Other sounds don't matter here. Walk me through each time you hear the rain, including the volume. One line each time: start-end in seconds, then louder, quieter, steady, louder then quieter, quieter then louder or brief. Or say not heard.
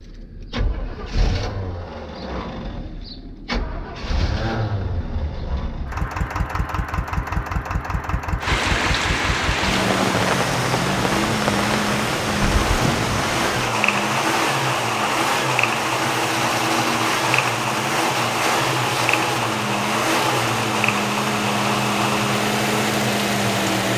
8.4-23.9 steady.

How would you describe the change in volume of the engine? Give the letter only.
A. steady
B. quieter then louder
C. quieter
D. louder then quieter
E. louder
E.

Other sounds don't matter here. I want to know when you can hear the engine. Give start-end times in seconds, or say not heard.
0.0-23.9.